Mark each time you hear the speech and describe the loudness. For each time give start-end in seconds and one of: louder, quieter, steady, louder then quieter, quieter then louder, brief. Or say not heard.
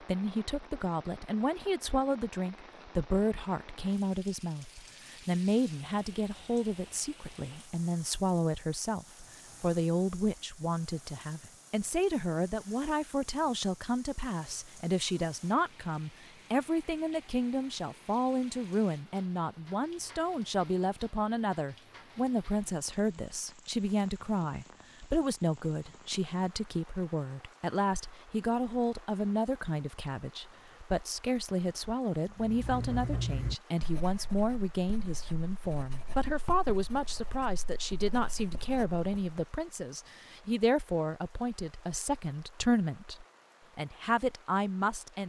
0.0-45.2 steady.